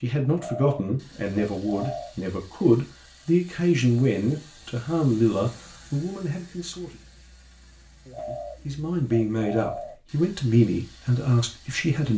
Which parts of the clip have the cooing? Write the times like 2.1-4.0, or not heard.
0.3-2.1, 8.1-9.9.